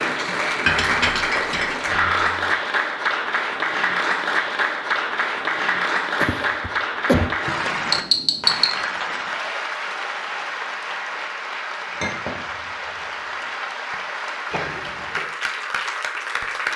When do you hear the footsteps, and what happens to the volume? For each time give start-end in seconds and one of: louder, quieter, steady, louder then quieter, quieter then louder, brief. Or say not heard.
not heard.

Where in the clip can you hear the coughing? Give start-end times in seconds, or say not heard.
1.9-2.4, 6.2-7.3, 14.5-15.2.